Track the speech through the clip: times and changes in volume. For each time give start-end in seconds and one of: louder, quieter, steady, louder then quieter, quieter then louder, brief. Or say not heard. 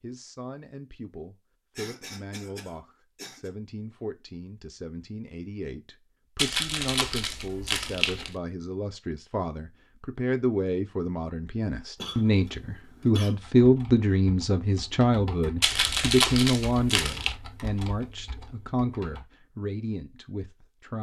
0.0-20.9 louder then quieter.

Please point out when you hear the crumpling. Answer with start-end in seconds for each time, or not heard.
6.3-8.3, 15.6-17.4.